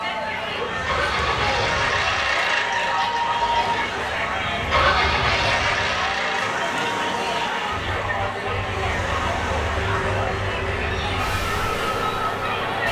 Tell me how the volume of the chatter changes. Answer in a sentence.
The volume of the chatter stays about the same.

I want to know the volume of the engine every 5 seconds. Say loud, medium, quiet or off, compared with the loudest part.
loud, loud, medium.